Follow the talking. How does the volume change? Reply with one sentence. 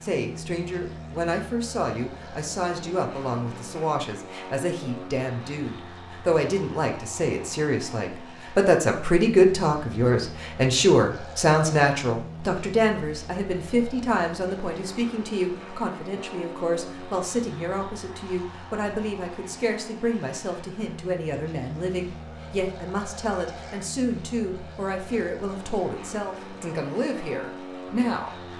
The volume of the talking goes up, then down.